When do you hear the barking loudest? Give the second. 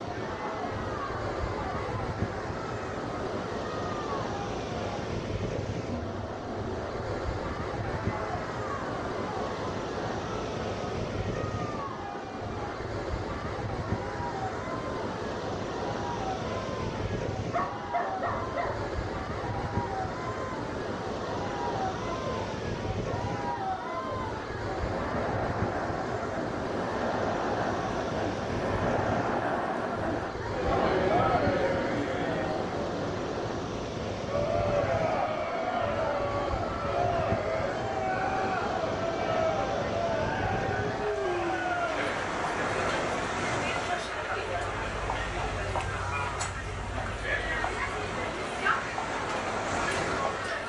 18 s.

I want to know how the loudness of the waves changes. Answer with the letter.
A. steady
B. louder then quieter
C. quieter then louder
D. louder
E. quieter
A.